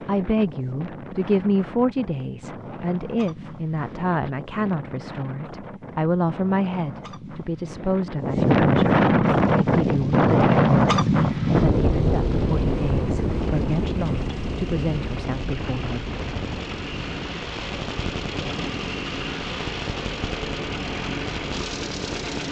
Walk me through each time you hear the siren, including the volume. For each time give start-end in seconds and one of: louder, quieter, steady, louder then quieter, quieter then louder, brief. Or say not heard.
not heard.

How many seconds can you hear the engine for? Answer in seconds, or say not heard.
13 s.